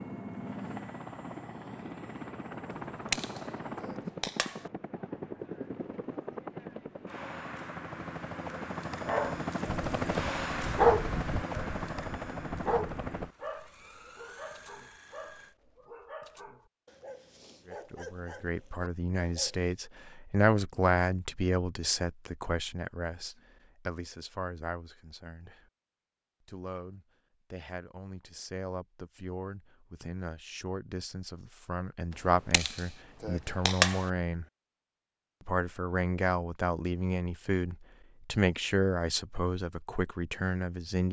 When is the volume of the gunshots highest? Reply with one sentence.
The volume of the gunshots peaks at 34 seconds.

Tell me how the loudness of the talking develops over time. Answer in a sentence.
The loudness of the talking goes down, then up.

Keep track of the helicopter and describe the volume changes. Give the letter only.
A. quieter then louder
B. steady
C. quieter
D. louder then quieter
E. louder
D.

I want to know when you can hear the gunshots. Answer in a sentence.
The gunshots can be heard from 2.7 to 4.7 s and from 32.5 to 34.1 s.